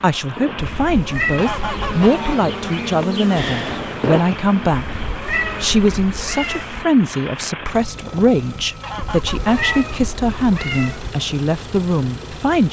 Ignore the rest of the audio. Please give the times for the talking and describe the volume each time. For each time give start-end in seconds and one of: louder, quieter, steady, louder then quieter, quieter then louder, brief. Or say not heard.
0.0-12.6 steady.